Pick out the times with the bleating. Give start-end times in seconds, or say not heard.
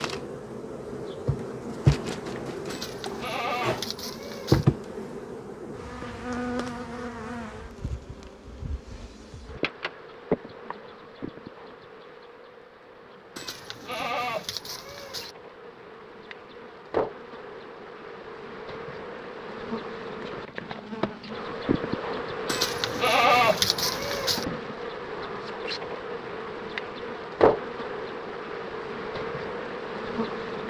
2.7-4.7, 13.3-15.3, 22.4-24.4.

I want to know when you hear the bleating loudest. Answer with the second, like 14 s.
23 s.